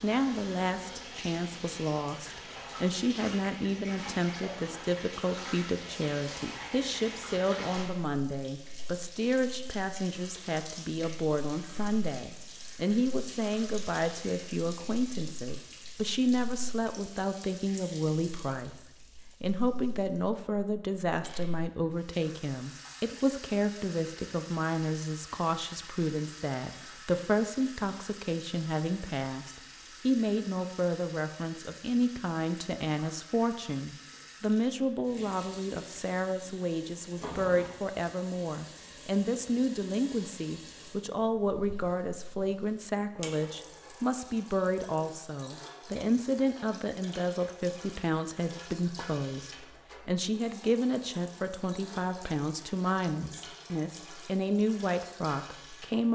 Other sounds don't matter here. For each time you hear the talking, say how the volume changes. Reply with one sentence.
You can hear the talking from 0.0 to 56.1 s, at a steady volume.